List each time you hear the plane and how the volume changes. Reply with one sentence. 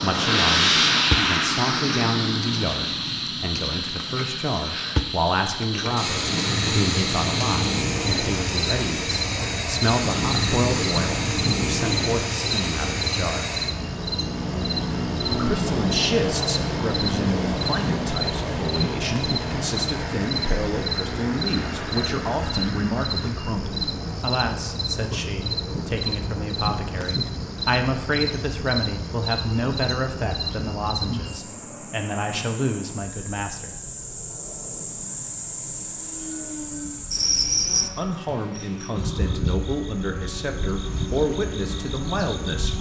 You can hear the plane from 0.0 to 42.7 s, getting quieter.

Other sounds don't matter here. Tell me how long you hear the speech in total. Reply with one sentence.
The speech can be heard for 37 seconds in total.